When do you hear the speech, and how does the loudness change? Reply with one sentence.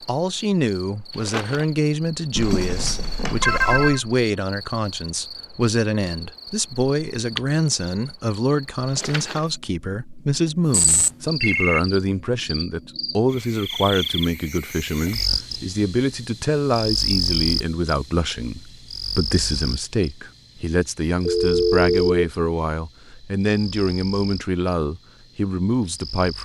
The speech can be heard from 0.1 to 26.4 s, at a steady volume.